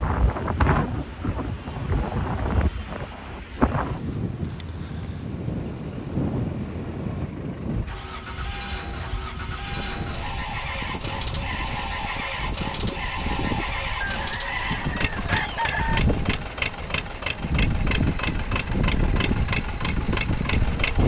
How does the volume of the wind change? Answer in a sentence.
The volume of the wind goes down, then up.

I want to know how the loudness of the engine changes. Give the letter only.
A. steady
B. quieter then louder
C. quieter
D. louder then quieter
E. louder
E.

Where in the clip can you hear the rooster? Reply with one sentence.
You can hear the rooster from 14.0 to 16.0 s.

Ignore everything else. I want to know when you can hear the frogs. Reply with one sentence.
The frogs can't be heard in this clip.